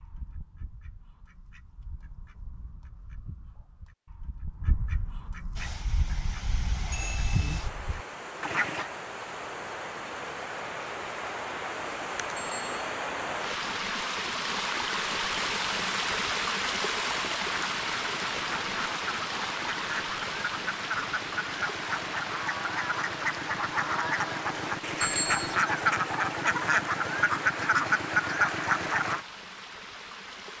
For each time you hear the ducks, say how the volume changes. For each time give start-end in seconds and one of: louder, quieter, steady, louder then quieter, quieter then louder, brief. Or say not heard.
0.0-8.9 louder
17.5-29.2 louder.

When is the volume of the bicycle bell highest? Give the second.
25 s.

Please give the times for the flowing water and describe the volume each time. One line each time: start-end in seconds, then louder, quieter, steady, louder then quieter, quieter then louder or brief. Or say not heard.
5.5-30.5 louder then quieter.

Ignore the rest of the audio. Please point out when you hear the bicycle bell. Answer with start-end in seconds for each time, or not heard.
6.9-7.7, 12.3-12.8, 25.0-25.6.